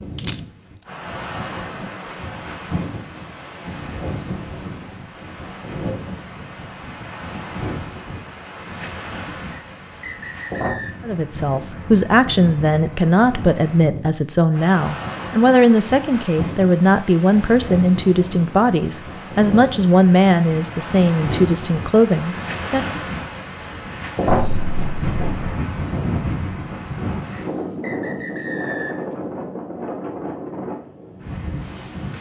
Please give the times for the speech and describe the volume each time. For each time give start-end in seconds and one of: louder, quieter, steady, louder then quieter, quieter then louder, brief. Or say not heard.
11.1-22.9 steady.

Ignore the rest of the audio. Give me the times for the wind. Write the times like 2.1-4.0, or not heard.
0.0-32.1.